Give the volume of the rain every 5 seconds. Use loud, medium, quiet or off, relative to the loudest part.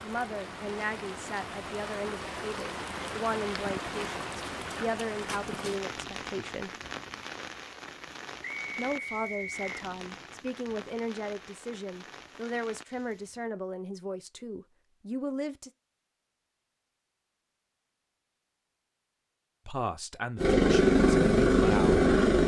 loud, loud, medium, off, off.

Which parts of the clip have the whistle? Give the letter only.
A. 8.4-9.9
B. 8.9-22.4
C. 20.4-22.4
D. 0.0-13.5
A.